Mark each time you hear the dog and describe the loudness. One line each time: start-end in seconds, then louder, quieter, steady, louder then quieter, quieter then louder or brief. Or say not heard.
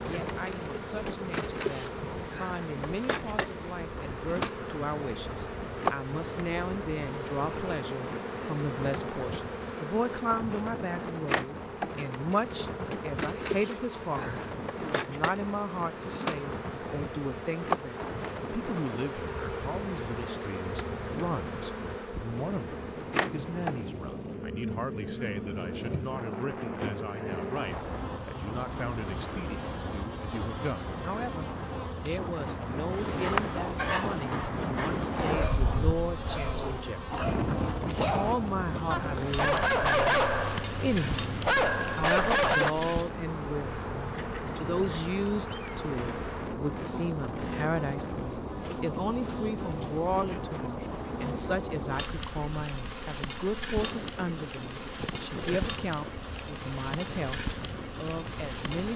33.0-42.8 louder.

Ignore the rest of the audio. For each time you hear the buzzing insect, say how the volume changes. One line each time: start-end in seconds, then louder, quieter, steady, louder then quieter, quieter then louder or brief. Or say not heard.
0.0-58.9 steady.